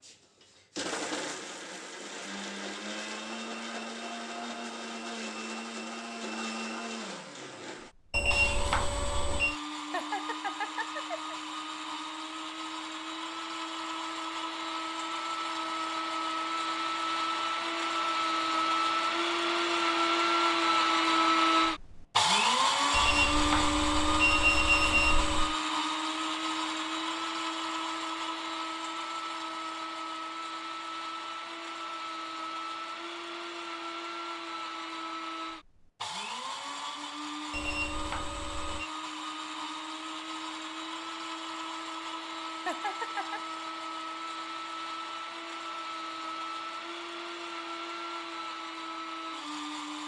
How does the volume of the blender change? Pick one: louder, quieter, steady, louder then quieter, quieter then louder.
louder then quieter.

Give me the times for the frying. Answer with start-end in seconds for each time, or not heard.
not heard.